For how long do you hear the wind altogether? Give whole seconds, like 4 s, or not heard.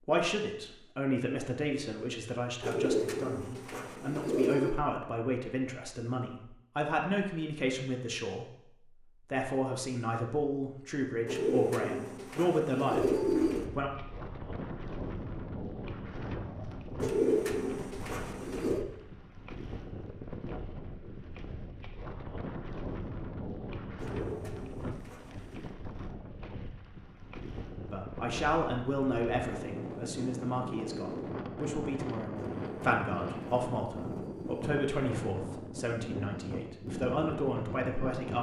25 s.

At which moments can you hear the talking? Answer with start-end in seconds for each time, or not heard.
0.1-8.4, 9.3-13.9, 27.9-38.3.